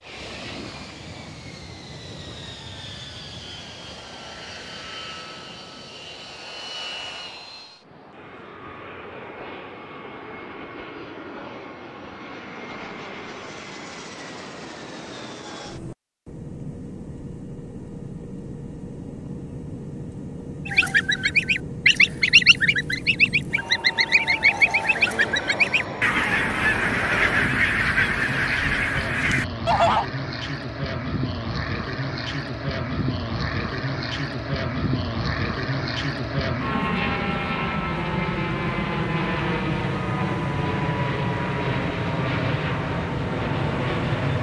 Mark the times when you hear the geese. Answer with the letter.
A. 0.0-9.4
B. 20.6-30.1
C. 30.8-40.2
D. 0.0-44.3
B.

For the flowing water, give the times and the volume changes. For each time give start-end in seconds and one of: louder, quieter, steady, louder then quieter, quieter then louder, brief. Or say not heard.
not heard.